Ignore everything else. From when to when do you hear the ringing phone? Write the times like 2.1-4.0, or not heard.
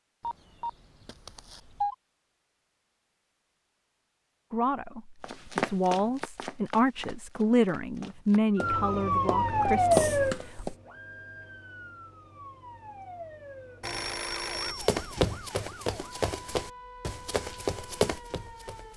0.2-1.9, 9.9-10.8, 13.8-15.4.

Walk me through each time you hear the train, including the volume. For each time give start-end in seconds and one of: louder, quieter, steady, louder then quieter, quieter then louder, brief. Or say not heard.
not heard.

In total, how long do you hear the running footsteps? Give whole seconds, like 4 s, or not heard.
10 s.